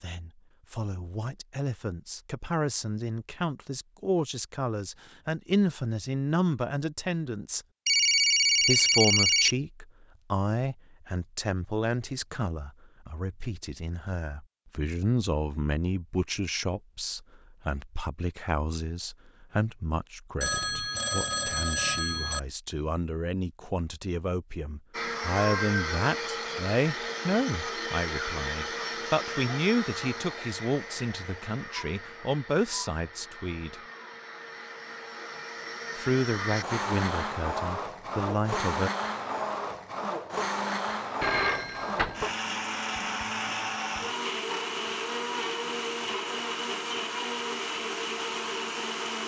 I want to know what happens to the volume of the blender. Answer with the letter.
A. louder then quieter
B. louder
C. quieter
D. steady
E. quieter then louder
E.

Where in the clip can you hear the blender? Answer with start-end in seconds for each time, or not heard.
24.9-49.2.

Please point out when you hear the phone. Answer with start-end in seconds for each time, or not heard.
7.8-9.6, 20.4-22.4, 41.2-42.3.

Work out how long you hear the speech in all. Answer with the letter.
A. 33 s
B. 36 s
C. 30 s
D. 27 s
B.